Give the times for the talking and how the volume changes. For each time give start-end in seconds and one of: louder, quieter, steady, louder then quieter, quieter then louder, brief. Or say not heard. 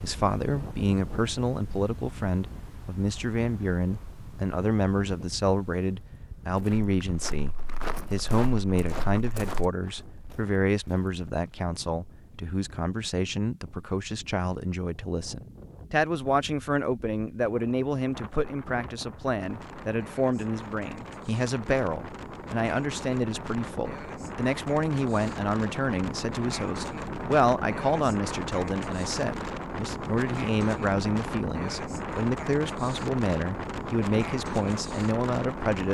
0.0-35.8 steady.